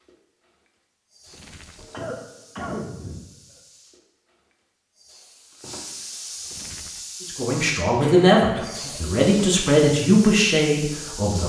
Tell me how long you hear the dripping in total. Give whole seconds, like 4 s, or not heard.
not heard.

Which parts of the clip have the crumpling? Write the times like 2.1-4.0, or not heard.
1.2-2.1, 6.4-7.0.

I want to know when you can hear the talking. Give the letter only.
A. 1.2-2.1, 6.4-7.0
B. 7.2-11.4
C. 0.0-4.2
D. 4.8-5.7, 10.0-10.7
B.